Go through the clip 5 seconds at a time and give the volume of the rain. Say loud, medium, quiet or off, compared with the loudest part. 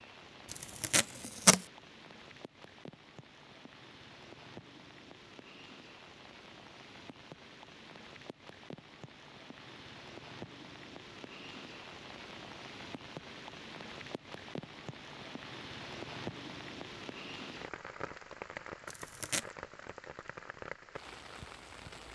medium, medium, loud, loud, loud.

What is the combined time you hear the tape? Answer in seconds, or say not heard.
2 s.